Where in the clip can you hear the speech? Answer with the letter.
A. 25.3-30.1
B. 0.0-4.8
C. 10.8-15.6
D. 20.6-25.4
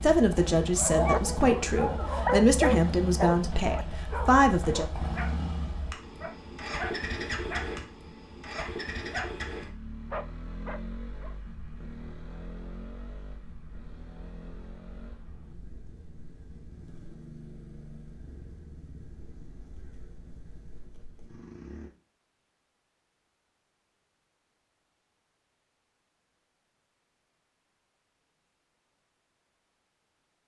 B.